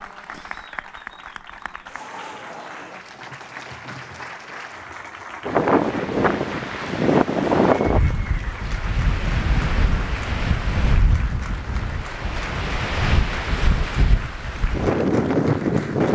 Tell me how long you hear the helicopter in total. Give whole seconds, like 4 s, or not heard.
not heard.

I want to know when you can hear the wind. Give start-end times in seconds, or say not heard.
5.5-16.0.